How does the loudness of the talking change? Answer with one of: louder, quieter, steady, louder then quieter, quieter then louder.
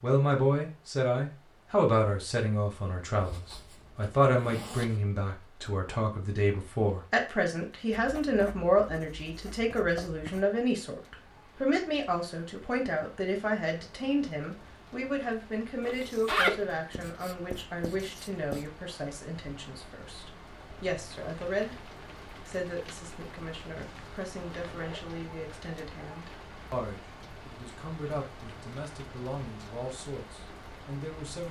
quieter.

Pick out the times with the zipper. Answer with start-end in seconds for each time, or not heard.
3.2-5.0, 15.8-16.6, 23.8-25.1.